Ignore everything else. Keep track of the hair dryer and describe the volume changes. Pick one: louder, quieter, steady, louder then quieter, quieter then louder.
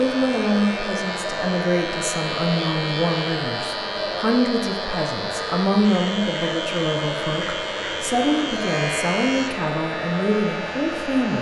steady.